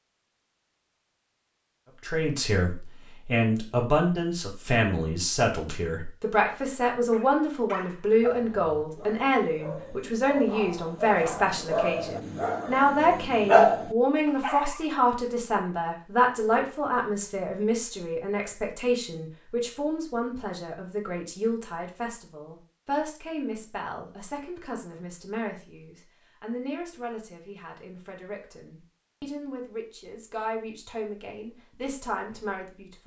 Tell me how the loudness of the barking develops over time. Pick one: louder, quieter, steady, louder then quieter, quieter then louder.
louder.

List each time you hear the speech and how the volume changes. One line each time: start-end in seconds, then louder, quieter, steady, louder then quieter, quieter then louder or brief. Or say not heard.
2.0-33.0 quieter.